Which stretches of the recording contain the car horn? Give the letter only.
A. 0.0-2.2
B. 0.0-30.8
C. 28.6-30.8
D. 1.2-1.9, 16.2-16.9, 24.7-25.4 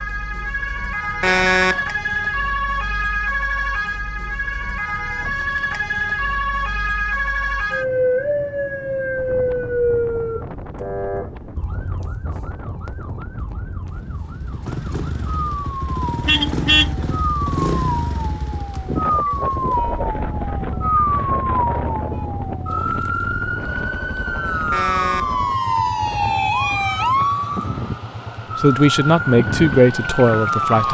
D.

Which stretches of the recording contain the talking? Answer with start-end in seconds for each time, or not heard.
28.6-30.8.